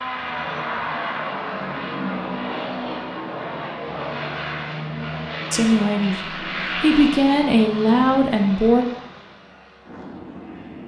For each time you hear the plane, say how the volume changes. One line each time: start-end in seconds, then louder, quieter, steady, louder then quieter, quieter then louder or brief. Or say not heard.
0.0-10.8 quieter.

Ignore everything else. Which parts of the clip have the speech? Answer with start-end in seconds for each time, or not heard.
5.5-8.8.